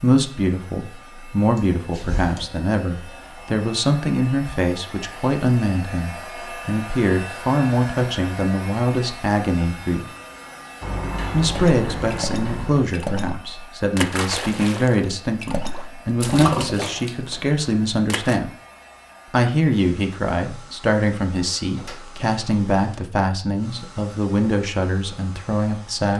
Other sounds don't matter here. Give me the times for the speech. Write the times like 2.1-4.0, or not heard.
0.0-10.1, 11.3-18.5, 19.3-26.1.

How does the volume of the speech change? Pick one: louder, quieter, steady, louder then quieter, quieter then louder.
steady.